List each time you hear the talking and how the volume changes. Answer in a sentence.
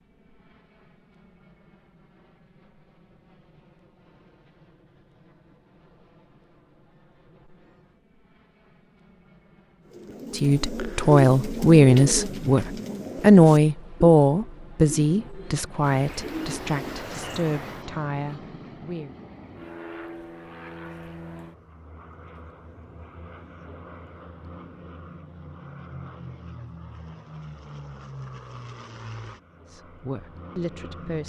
The talking can be heard from 10.3 to 19.1 s, getting quieter; and briefly from 29.7 to 31.2 s.